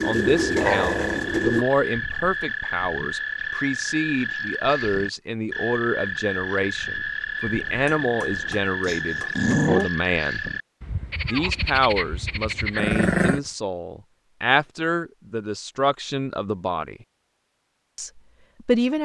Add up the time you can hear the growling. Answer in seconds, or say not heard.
2 s.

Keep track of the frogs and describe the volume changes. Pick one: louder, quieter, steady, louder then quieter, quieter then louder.
steady.